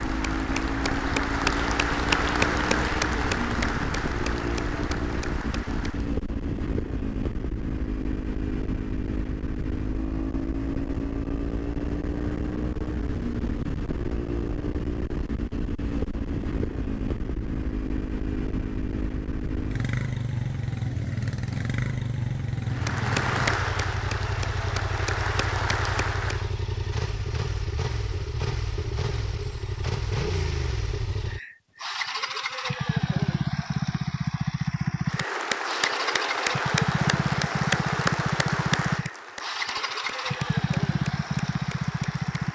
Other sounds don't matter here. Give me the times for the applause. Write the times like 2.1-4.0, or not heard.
0.0-6.1, 22.6-26.6, 35.0-42.4.